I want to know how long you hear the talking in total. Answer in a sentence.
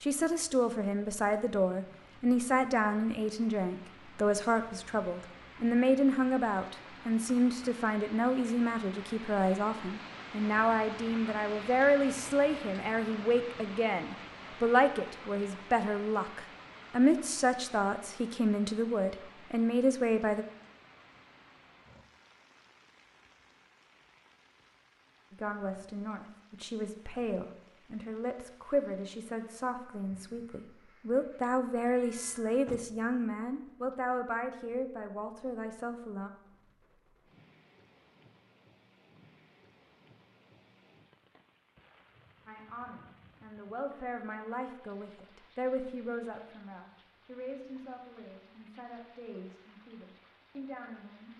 You can hear the talking for 40 seconds altogether.